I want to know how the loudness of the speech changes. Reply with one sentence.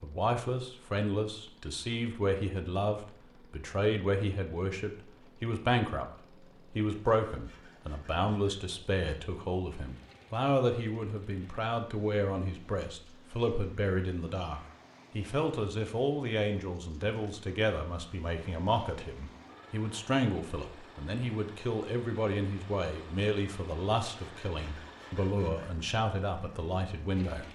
The volume of the speech stays about the same.